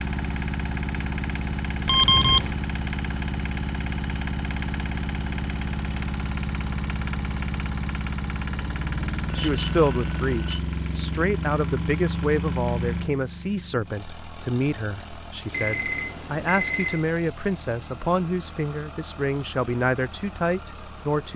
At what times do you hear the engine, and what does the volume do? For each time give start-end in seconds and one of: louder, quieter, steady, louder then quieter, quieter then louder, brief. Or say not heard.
0.0-21.3 quieter.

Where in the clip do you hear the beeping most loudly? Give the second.
2 s.